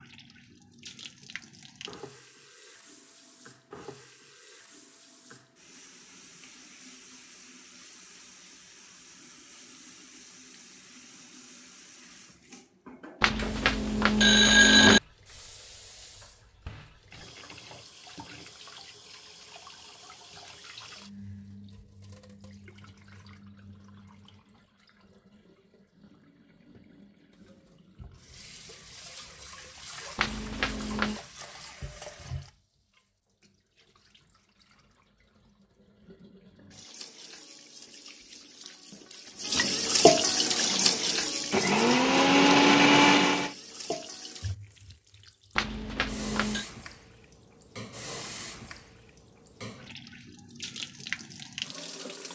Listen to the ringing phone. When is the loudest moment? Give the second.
15 s.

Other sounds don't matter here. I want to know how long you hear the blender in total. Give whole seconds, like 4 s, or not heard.
3 s.